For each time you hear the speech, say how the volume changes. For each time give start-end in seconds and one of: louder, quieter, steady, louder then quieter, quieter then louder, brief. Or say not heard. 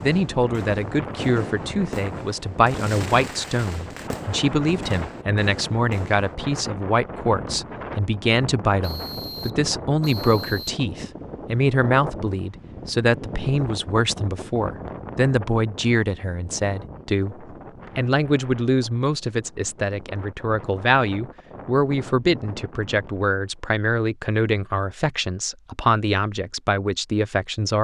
0.0-27.8 steady.